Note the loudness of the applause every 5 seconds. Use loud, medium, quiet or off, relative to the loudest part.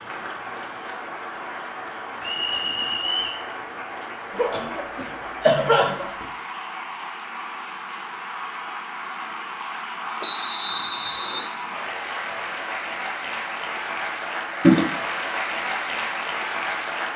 medium, medium, loud, loud.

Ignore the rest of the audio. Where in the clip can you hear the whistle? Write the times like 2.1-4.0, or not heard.
2.2-3.5, 10.2-11.5.